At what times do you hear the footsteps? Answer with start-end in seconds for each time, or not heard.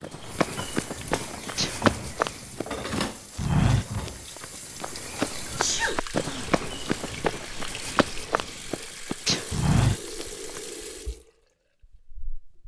0.0-10.6.